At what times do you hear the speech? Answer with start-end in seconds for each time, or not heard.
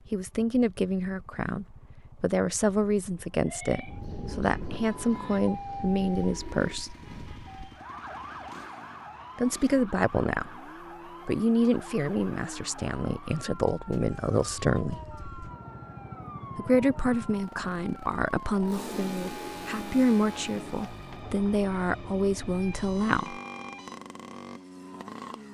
0.1-6.9, 9.3-10.6, 11.2-15.1, 16.6-23.4.